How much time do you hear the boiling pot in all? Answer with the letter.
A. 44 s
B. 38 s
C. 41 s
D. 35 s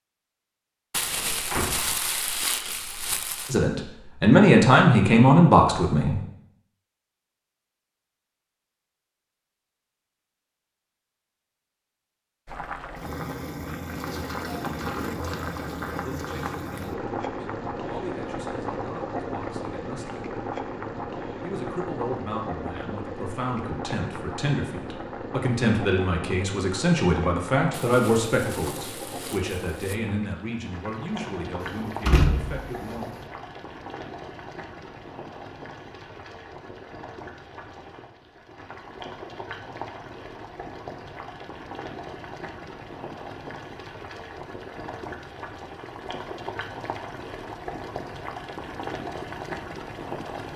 B.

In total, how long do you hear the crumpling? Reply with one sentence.
You can hear the crumpling for 5 seconds altogether.